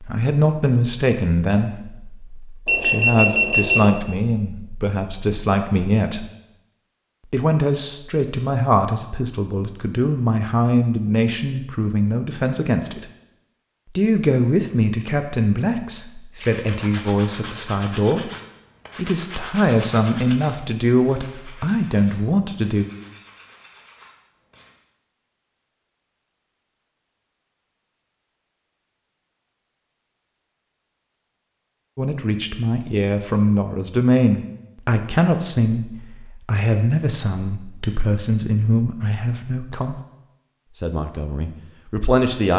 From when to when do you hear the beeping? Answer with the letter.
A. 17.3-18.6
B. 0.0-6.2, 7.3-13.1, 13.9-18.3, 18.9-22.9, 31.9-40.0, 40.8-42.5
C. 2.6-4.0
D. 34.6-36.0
C.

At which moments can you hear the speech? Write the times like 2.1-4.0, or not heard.
0.0-6.2, 7.3-13.1, 13.9-18.3, 18.9-22.9, 31.9-40.0, 40.8-42.5.